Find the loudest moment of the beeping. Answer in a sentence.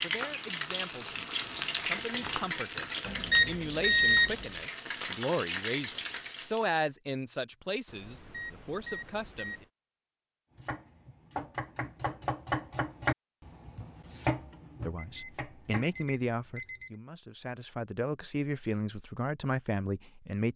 The loudest moment of the beeping is at 4 seconds.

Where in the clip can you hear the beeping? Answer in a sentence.
You can hear the beeping from 3.0 to 4.5 s, from 7.8 to 9.7 s and from 14.9 to 16.9 s.